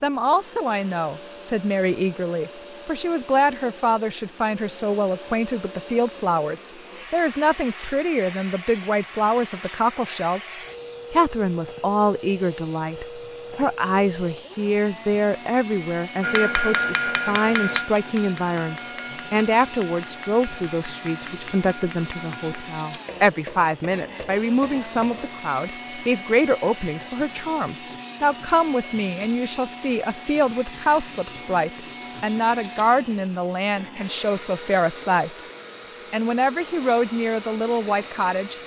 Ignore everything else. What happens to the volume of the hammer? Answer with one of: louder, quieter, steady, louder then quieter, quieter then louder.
quieter.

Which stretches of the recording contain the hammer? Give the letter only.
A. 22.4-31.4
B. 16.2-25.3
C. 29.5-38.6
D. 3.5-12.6
B.